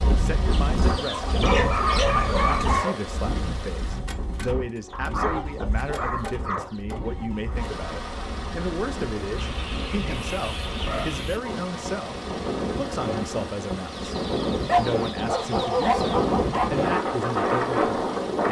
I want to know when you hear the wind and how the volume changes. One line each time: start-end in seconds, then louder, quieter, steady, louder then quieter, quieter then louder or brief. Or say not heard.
0.0-18.4 quieter then louder.